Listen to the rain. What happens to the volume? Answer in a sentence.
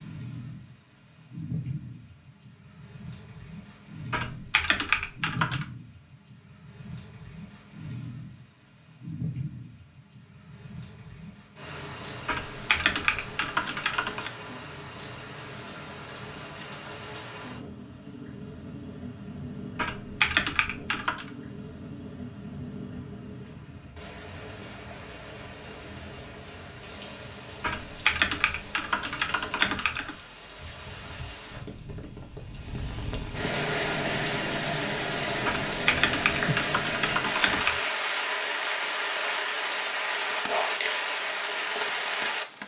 The loudness of the rain goes up.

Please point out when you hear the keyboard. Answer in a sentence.
The keyboard can be heard from 4.1 to 5.7 s, from 12.2 to 14.3 s, from 19.8 to 21.3 s, from 27.6 to 30.1 s and from 35.5 to 37.9 s.